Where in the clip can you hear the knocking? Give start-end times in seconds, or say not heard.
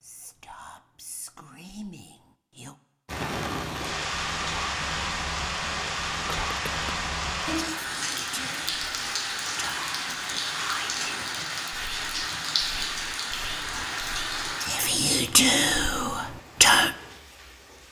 not heard.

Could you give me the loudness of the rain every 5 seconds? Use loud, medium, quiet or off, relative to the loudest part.
loud, loud, loud, quiet.